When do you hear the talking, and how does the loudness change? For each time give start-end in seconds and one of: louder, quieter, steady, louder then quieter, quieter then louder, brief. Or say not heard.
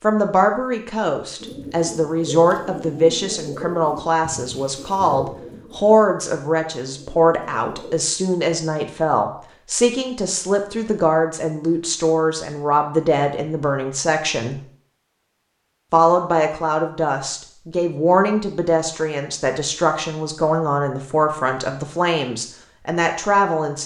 0.0-14.6 steady
15.9-23.8 steady.